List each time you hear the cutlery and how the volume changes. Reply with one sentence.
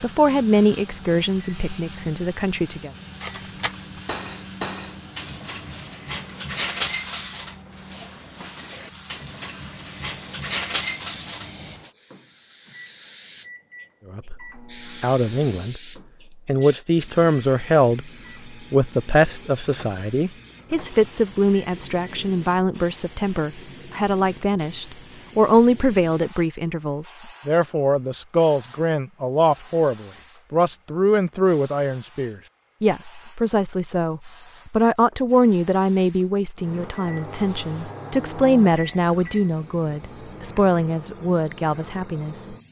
You can hear the cutlery from 3.2 to 11.9 s, getting quieter then louder.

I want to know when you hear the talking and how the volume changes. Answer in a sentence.
You can hear the talking briefly from 0.0 to 2.9 s; briefly from 14.1 to 15.8 s; and from 16.4 to 42.5 s, at a steady volume.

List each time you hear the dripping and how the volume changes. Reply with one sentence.
You can't hear the dripping here.